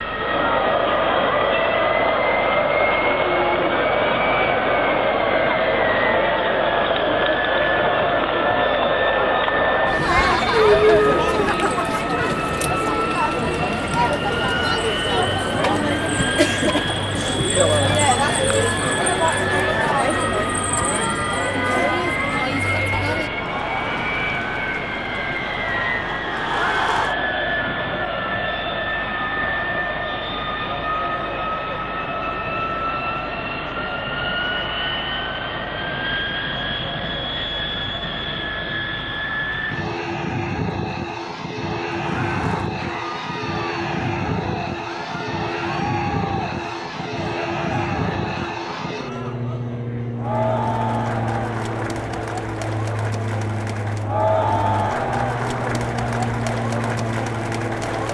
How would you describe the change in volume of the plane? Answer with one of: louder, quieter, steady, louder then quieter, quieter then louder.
steady.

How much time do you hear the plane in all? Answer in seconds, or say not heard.
58 s.